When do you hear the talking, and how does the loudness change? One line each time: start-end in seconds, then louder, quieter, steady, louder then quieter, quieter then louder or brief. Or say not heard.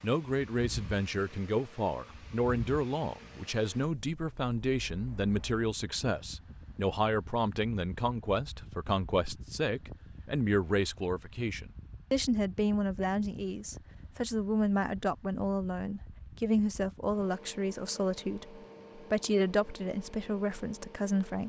0.0-21.4 steady.